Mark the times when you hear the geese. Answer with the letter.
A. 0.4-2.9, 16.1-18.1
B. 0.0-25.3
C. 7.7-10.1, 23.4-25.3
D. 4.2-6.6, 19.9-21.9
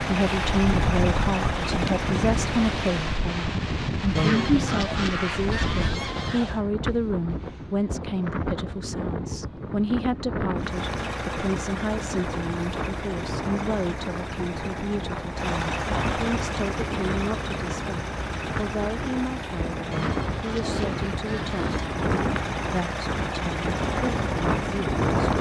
D.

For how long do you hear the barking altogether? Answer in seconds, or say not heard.
not heard.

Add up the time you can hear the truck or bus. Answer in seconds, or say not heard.
18 s.